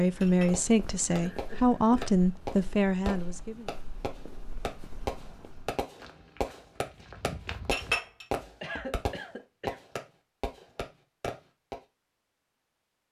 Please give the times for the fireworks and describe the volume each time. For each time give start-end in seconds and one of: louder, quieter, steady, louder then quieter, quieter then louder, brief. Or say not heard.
0.5-11.8 steady.